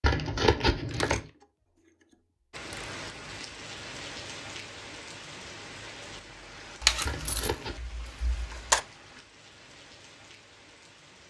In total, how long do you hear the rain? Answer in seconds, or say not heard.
9 s.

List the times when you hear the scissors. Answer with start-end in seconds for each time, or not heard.
0.0-1.2, 7.0-7.8.